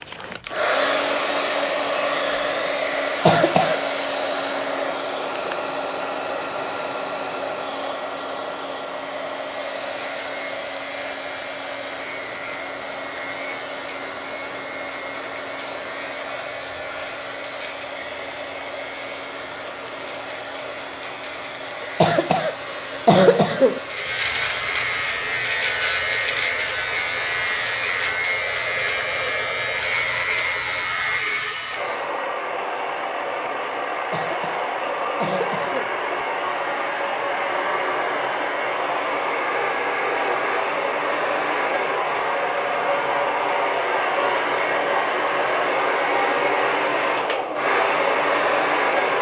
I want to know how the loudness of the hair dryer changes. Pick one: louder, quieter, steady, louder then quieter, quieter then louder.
quieter then louder.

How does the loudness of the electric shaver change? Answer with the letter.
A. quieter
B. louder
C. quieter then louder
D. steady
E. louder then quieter
B.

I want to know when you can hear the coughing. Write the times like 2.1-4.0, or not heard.
3.0-3.8, 21.8-23.8, 34.0-36.0.